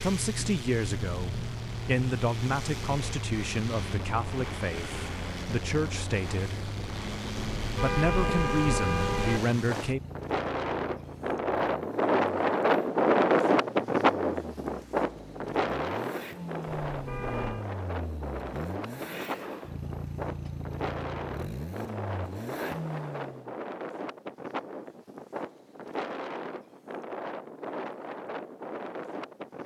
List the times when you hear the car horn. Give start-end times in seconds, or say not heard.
7.4-9.4, 16.9-17.7.